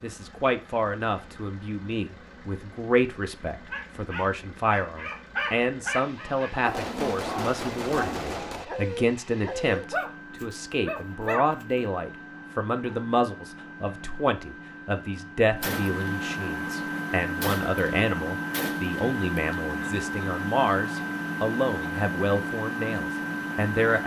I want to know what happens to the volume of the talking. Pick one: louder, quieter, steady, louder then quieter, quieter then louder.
steady.